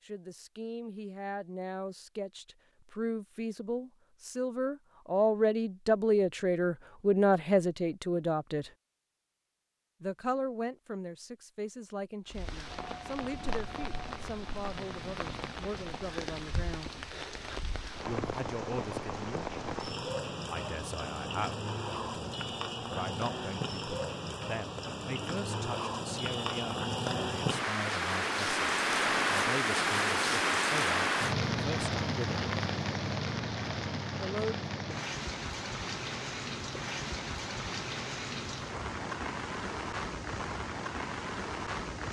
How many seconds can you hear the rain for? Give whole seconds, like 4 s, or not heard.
30 s.